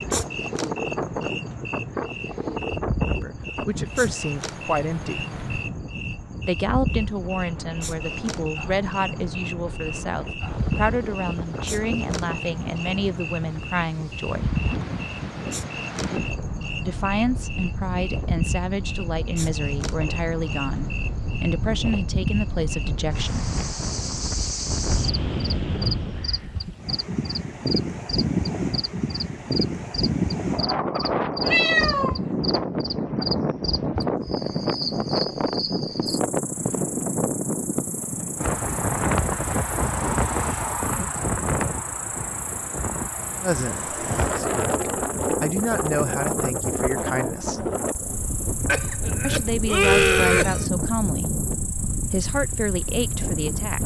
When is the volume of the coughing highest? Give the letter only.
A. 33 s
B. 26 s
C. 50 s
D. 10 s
C.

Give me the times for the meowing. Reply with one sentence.
You can hear the meowing from 31.4 to 32.2 s.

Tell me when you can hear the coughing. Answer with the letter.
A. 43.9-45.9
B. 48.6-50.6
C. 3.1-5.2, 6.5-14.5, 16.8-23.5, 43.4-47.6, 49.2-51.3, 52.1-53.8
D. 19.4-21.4
B.